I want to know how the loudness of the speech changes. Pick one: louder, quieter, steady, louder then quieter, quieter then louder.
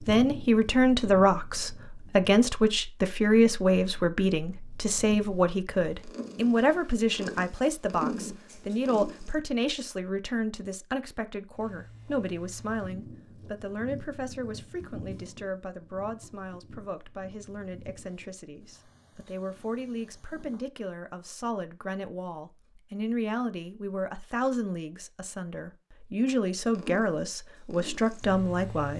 quieter then louder.